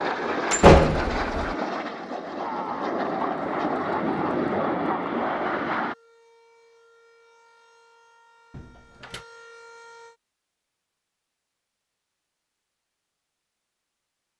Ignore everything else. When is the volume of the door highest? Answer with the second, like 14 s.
1 s.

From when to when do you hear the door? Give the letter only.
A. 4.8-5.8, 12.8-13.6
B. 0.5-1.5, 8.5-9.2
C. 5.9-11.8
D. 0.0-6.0
B.